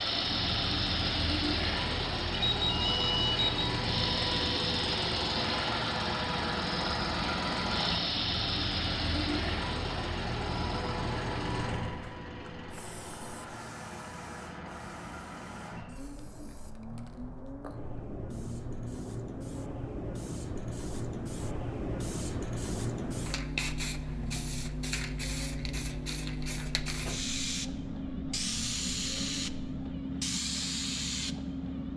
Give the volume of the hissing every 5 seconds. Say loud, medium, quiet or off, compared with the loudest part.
loud, loud, quiet, medium, loud, loud, loud.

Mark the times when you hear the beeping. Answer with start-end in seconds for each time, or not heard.
2.3-3.6.